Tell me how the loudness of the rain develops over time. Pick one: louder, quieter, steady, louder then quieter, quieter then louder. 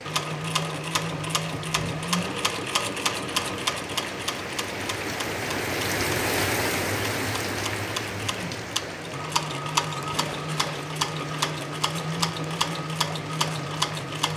louder then quieter.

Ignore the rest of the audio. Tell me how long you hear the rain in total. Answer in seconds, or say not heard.
14 s.